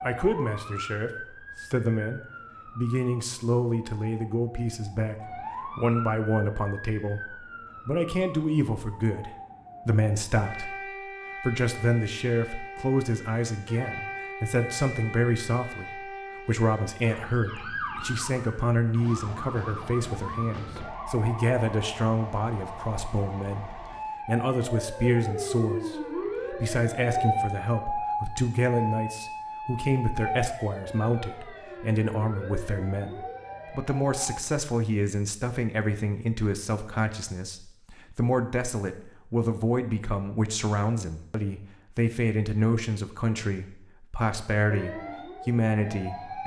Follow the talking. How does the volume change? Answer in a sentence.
The volume of the talking stays about the same.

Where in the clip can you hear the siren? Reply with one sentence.
The siren can be heard from 0.0 to 34.4 s and from 44.7 to 46.4 s.